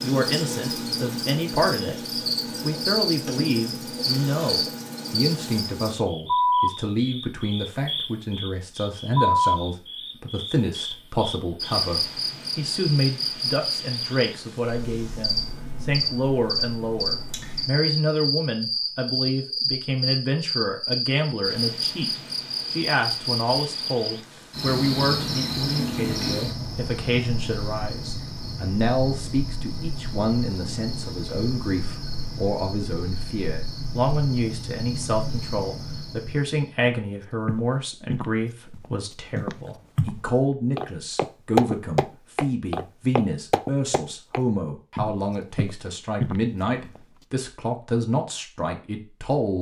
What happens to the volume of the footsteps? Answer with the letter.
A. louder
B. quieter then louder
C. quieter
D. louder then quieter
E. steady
D.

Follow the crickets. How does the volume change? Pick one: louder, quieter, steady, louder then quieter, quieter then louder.
quieter.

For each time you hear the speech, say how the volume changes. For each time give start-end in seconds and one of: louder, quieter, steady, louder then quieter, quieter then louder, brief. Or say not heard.
0.0-1.9 brief
2.6-49.5 steady.